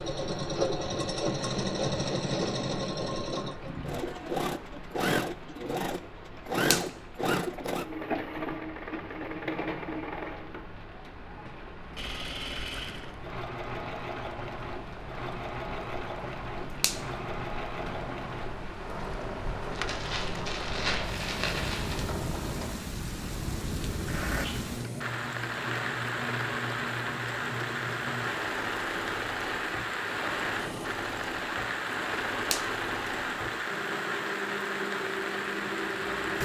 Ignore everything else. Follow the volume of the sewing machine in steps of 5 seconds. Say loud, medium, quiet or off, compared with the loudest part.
loud, loud, medium, medium, medium, medium, medium, medium.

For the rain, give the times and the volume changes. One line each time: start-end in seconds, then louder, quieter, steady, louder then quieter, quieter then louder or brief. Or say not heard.
0.0-36.4 louder.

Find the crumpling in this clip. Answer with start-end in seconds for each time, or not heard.
19.7-22.1.